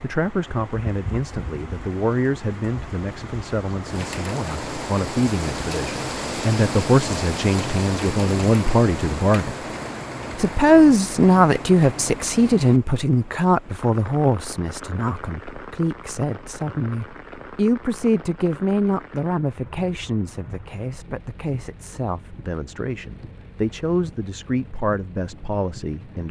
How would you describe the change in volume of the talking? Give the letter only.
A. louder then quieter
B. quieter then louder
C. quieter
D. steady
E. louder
A.